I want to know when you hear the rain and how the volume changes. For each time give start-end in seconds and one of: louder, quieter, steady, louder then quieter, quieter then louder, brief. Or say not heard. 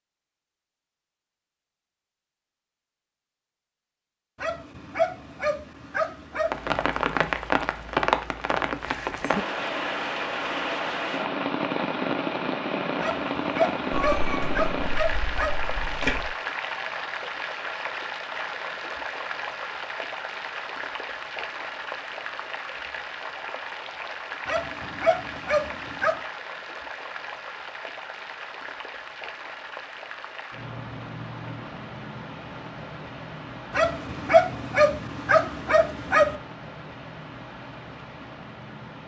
6.5-39.0 quieter.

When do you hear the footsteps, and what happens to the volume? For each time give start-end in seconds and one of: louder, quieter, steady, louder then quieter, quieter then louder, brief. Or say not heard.
not heard.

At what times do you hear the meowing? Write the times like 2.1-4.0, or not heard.
13.9-16.3.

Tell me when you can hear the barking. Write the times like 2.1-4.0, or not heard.
4.3-6.7, 13.0-15.5, 24.4-26.2, 33.7-36.4.